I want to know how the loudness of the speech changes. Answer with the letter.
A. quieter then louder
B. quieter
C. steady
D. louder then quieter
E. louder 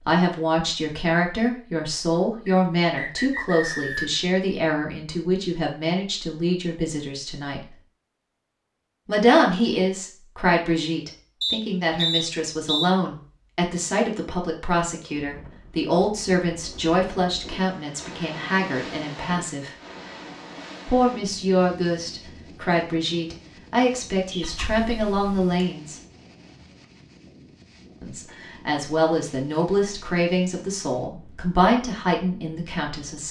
C.